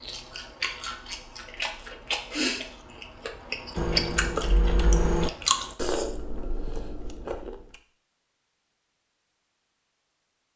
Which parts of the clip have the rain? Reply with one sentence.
The rain can't be heard in this clip.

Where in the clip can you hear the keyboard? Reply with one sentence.
The keyboard can be heard from 3.8 to 5.3 s.